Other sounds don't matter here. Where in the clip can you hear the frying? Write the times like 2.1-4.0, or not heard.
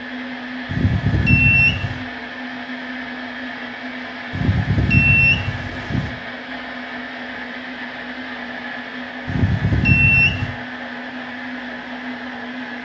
not heard.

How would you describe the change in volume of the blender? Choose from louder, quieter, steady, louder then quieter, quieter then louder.
steady.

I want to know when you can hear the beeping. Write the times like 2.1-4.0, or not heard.
0.7-2.0, 4.3-6.1, 9.2-10.5.